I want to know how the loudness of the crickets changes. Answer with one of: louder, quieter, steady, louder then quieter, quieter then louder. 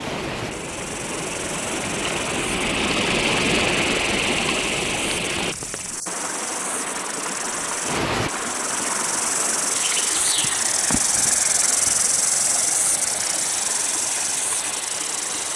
louder.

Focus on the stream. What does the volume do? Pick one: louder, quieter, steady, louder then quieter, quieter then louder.
quieter.